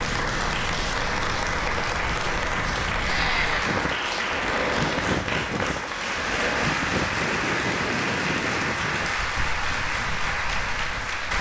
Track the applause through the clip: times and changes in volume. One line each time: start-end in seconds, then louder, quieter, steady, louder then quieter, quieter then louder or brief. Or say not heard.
0.0-11.3 steady.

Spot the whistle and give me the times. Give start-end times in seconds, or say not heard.
not heard.